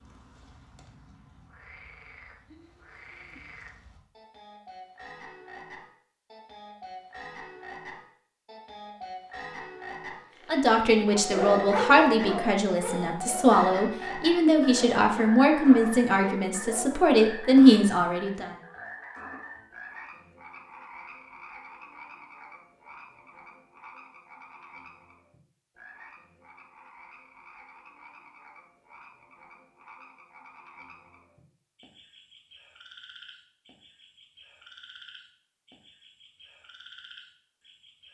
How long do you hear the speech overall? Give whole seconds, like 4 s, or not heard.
8 s.